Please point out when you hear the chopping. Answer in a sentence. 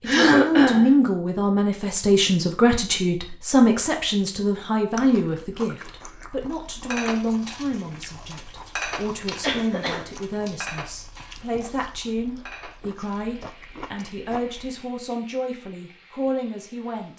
The chopping can't be heard in this clip.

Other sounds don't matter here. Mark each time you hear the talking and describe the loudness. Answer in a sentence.
The talking can be heard from 0.0 to 17.1 s, getting quieter.